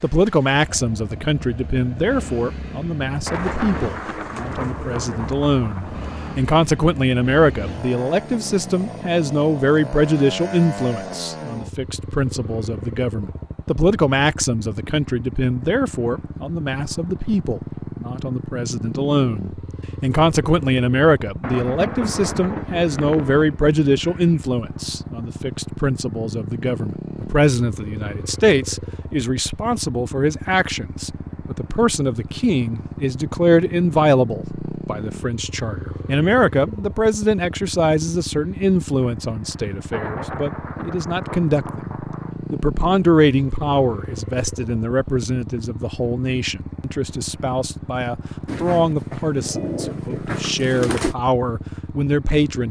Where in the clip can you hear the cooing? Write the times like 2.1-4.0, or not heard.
3.3-5.3, 22.8-24.4, 48.5-51.1.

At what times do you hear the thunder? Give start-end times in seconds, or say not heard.
3.2-6.5, 21.4-23.4, 39.2-42.4.